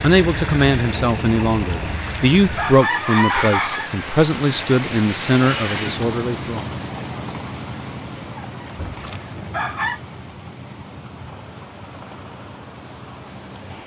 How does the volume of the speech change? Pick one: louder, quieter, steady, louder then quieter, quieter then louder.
steady.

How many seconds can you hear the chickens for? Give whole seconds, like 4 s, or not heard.
4 s.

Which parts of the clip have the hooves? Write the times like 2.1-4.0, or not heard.
not heard.